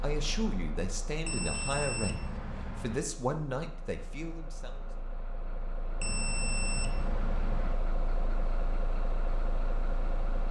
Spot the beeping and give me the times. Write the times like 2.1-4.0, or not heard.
1.2-3.0, 6.0-7.8.